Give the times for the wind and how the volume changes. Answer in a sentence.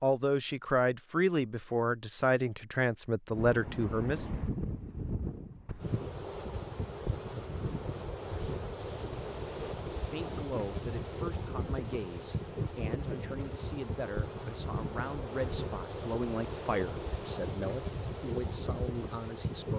The wind can be heard from 3.3 to 19.7 s, at a steady volume.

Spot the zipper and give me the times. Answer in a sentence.
The zipper can't be heard in this clip.